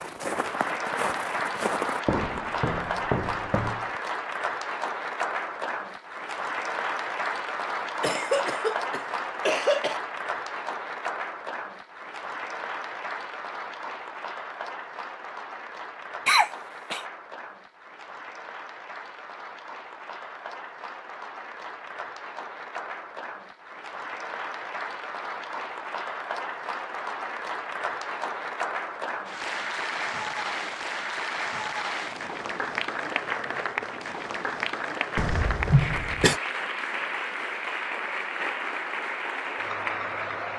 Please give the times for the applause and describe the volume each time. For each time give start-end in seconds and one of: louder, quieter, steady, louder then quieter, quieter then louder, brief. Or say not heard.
0.0-40.5 quieter then louder.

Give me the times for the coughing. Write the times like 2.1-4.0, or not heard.
8.0-10.0, 16.2-17.0, 35.1-36.4.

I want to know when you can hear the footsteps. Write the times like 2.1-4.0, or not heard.
0.0-4.0.